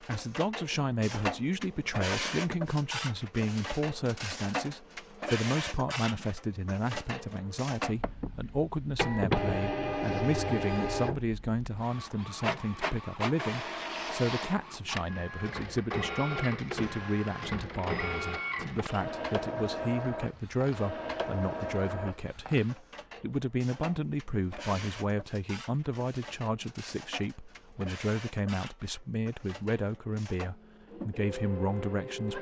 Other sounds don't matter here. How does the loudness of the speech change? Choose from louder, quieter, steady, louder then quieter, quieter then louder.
steady.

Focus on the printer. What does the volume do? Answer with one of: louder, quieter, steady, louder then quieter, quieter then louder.
quieter.